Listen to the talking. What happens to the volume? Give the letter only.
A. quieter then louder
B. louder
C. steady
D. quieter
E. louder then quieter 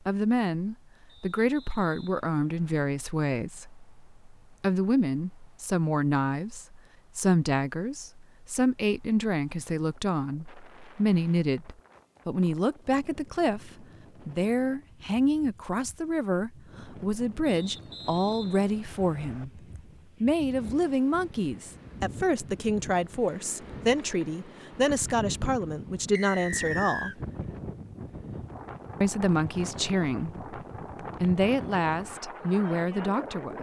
C.